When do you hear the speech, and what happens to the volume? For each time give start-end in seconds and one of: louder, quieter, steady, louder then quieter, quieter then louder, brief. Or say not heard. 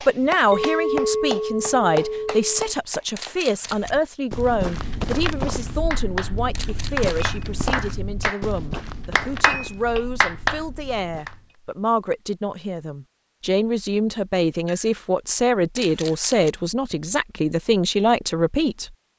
0.1-18.9 quieter then louder.